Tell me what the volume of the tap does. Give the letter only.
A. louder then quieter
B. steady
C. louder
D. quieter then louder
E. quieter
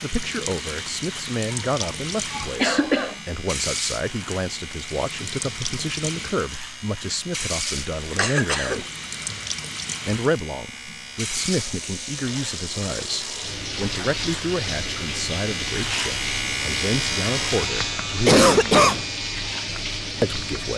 B.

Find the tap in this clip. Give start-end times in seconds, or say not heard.
0.0-20.7.